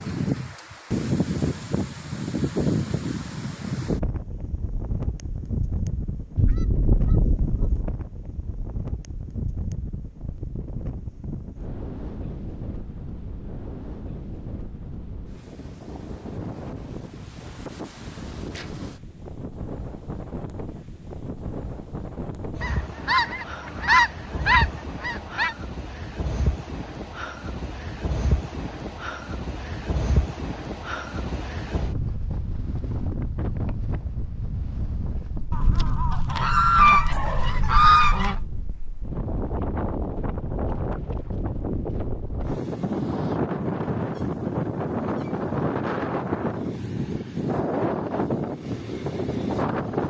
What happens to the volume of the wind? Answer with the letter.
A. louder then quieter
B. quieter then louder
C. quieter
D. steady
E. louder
B.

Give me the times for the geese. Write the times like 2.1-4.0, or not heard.
6.3-7.9, 22.6-25.6, 35.5-38.5.